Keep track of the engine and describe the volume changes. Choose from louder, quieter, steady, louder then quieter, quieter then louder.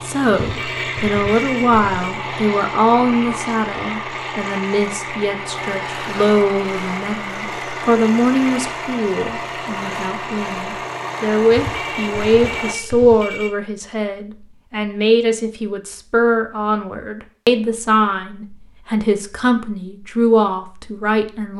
steady.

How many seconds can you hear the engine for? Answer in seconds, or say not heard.
13 s.